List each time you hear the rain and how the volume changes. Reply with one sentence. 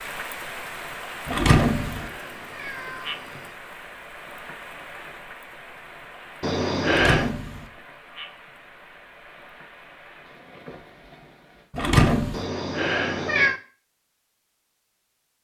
The rain can be heard from 0.0 to 11.7 s, getting quieter.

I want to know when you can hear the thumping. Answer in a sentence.
You can hear the thumping from 1.2 to 2.1 s, from 6.8 to 7.7 s and from 11.8 to 12.4 s.